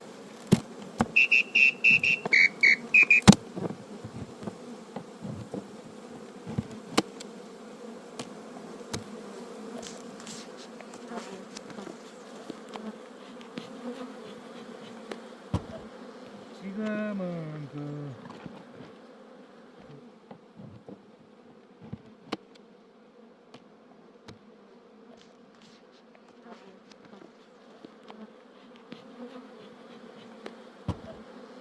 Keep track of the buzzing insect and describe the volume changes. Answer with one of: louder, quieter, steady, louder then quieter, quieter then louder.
quieter.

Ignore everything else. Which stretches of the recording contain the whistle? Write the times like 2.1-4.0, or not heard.
1.1-3.2.